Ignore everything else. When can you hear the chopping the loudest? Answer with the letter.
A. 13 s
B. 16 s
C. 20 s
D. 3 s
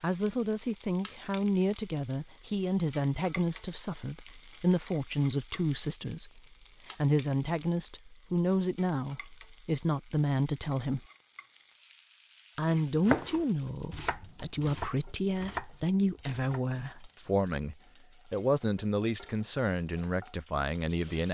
A.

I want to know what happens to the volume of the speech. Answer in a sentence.
The loudness of the speech stays about the same.